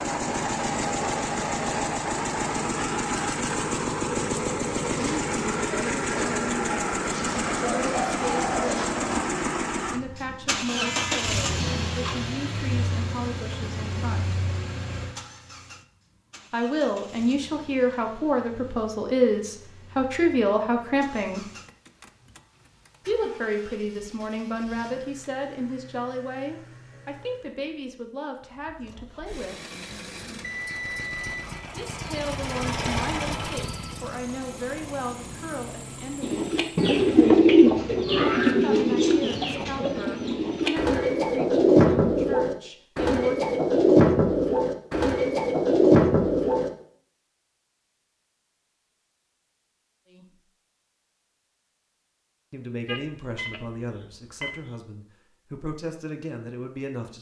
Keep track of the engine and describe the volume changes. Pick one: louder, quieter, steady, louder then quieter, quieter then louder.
quieter then louder.